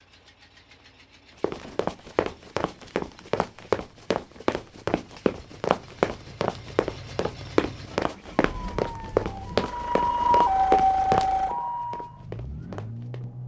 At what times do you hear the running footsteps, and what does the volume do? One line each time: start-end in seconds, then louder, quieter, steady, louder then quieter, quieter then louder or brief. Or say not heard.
1.4-13.2 steady.